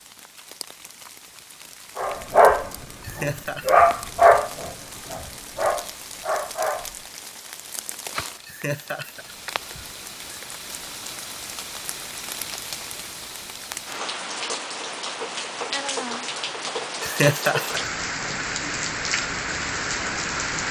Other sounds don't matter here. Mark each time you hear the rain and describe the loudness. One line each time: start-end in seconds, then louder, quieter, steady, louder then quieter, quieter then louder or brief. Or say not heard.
0.0-20.6 louder.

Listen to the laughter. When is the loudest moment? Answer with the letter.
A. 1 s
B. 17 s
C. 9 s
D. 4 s
B.